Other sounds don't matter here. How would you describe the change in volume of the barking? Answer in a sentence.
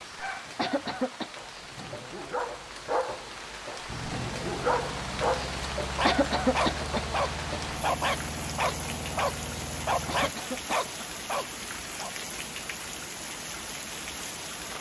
The volume of the barking goes up.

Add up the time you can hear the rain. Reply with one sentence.
The rain can be heard for 15 seconds in total.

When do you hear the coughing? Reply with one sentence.
The coughing can be heard from 0.6 to 1.3 s, from 6.0 to 7.2 s and from 10.1 to 11.2 s.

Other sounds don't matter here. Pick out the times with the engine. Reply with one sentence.
The engine can be heard from 3.9 to 10.3 s.